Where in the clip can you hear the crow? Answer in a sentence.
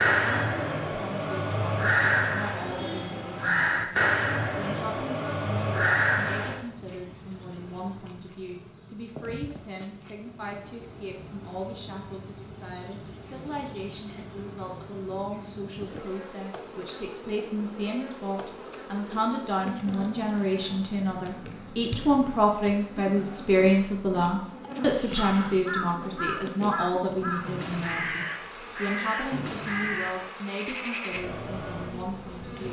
The crow can be heard from 0.0 to 6.6 s and from 24.8 to 31.9 s.